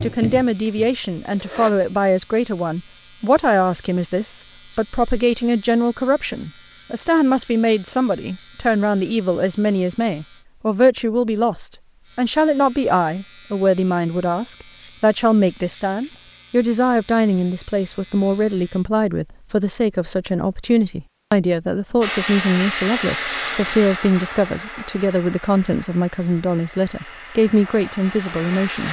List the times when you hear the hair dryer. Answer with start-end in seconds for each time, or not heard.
0.0-1.7, 22.0-28.8.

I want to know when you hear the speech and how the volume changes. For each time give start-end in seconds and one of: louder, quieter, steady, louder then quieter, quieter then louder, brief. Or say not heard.
0.0-28.8 steady.